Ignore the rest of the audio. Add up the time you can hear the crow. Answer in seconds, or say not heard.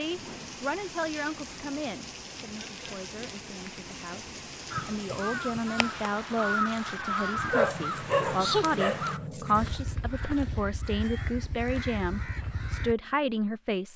8 s.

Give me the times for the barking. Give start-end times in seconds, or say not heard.
7.5-9.8.